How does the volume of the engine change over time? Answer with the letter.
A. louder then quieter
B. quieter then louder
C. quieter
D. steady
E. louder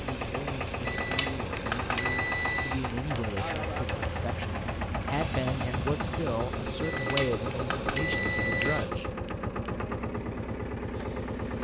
D.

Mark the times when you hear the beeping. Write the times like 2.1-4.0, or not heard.
0.8-2.8, 6.8-8.8.